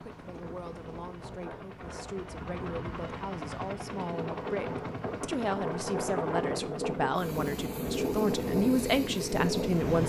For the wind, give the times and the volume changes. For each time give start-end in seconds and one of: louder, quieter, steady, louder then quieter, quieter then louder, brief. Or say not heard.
0.0-10.0 louder.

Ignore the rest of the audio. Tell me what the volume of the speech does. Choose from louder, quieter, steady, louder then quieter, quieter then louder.
louder.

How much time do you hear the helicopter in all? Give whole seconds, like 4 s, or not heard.
10 s.